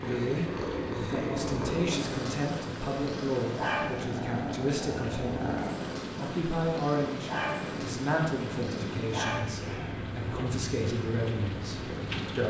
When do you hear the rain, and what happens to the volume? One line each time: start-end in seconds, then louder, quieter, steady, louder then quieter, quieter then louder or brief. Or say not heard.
0.0-12.4 steady.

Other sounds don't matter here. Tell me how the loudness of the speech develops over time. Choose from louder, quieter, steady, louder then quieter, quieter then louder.
steady.